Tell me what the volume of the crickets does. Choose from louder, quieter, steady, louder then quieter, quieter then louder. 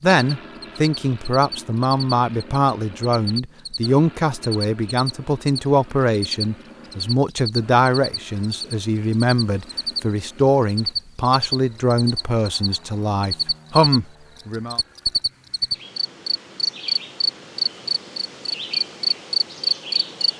louder.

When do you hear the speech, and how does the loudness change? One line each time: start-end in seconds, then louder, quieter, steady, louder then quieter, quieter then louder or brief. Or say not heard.
0.0-14.8 steady.